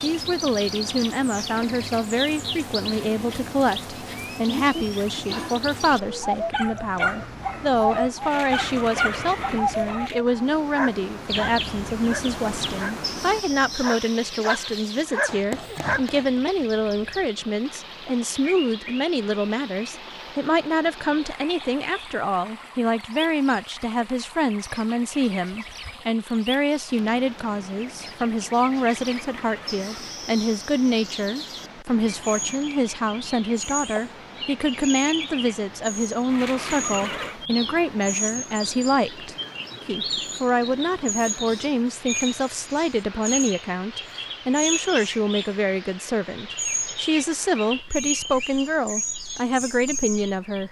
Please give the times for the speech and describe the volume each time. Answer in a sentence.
The speech can be heard from 0.0 to 50.6 s, at a steady volume.